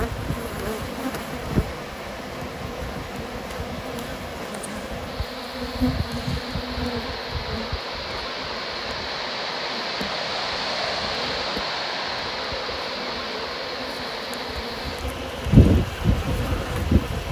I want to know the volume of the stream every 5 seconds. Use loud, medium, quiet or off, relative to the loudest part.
medium, loud, loud, medium.